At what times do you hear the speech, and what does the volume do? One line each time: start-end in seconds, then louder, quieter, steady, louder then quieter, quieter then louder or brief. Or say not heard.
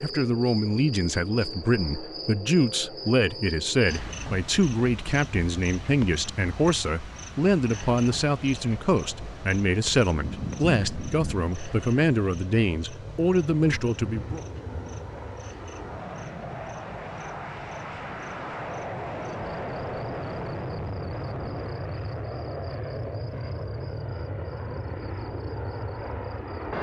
0.0-14.4 steady.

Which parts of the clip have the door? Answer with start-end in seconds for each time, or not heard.
not heard.